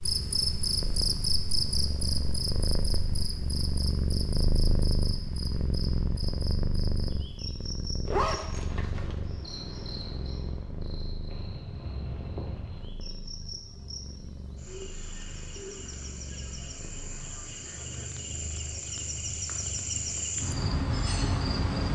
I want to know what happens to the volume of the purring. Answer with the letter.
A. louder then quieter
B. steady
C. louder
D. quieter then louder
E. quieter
E.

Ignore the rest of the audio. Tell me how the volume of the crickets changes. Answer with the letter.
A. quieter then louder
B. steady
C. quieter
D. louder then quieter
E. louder
A.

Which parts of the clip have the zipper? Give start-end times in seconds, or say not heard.
8.1-9.2.